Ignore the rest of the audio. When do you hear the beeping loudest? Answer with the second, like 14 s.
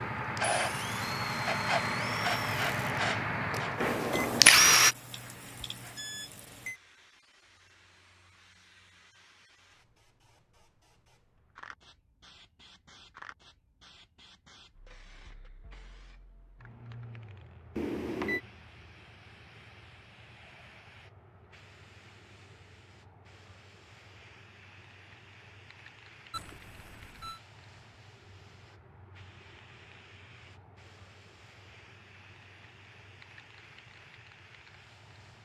18 s.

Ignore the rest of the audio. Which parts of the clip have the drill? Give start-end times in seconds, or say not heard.
0.1-5.0.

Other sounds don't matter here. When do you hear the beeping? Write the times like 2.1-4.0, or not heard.
4.1-6.8, 17.8-18.4, 26.3-27.4.